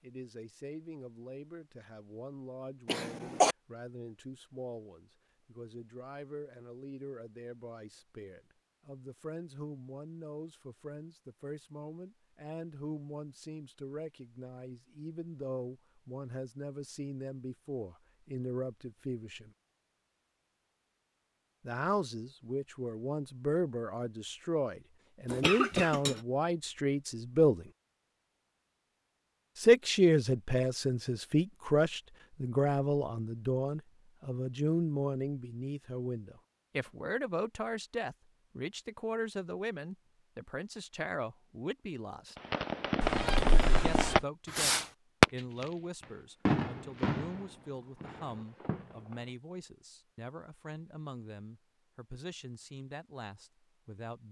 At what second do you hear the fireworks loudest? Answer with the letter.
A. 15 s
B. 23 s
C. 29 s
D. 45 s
D.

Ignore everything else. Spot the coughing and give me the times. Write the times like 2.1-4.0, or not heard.
2.9-3.5, 25.3-26.1, 43.0-44.2.